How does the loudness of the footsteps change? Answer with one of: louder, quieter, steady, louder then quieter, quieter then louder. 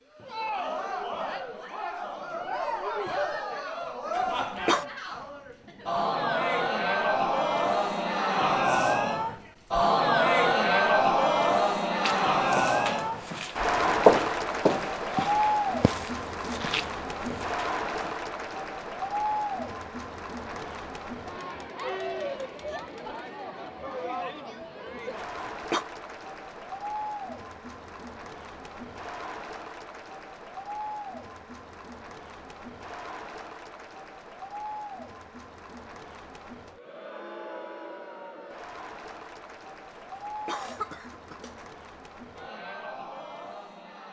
louder then quieter.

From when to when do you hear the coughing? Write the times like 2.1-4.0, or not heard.
4.2-4.8, 25.4-25.9, 40.0-41.6.